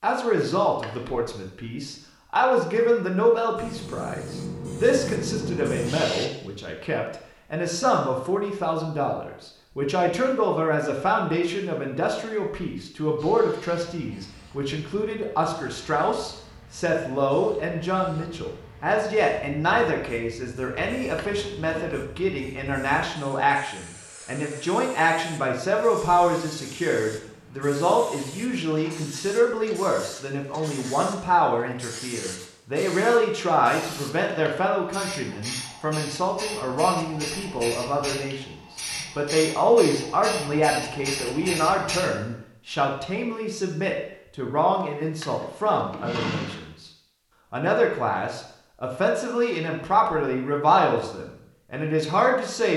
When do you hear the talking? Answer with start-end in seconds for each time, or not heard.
0.0-38.5, 39.1-46.9, 47.5-52.7.